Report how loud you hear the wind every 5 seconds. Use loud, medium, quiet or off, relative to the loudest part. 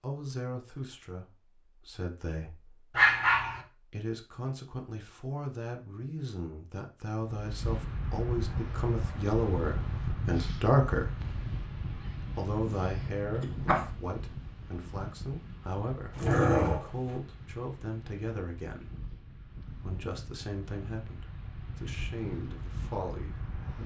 off, loud, loud, medium, medium.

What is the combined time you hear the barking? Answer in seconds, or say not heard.
3 s.